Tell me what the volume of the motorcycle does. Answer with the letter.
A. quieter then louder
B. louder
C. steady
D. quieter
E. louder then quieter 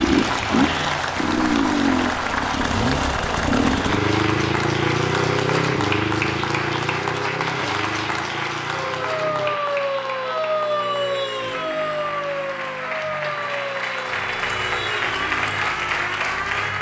D.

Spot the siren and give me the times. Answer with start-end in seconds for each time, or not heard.
8.7-16.7.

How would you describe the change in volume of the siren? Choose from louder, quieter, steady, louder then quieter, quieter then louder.
quieter.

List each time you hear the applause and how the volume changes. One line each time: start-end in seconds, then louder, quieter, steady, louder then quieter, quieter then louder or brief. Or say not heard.
0.0-16.7 quieter then louder.